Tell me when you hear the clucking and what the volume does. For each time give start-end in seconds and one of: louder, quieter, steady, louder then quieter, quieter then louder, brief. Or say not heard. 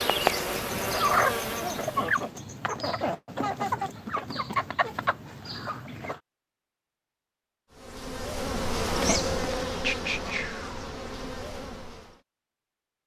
0.6-6.2 quieter.